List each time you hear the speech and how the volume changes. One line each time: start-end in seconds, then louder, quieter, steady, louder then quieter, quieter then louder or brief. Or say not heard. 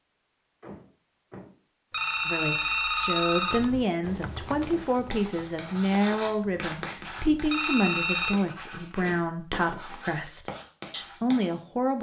2.2-11.9 steady.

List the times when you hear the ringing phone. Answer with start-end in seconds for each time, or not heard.
1.9-3.6, 7.5-8.3.